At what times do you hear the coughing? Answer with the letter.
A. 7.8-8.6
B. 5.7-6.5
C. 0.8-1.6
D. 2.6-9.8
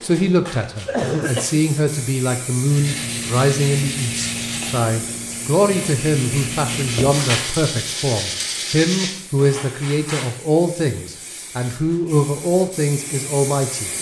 C.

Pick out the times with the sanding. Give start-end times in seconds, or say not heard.
2.6-9.8.